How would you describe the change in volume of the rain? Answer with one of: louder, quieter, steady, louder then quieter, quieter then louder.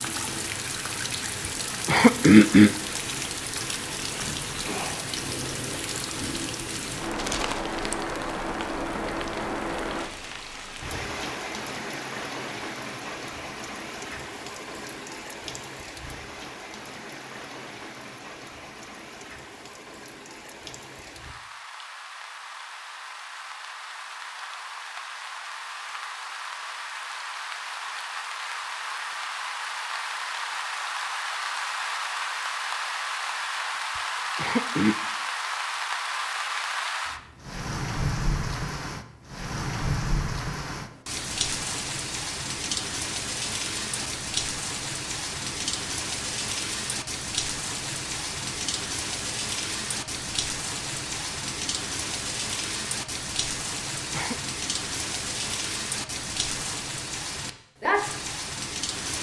quieter then louder.